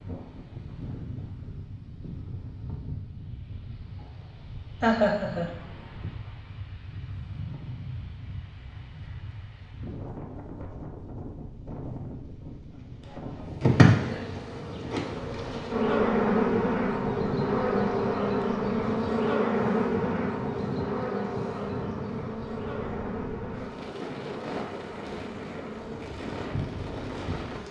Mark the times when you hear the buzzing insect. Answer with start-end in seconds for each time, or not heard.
13.6-27.6.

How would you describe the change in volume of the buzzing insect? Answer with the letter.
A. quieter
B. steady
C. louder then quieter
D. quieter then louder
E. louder
A.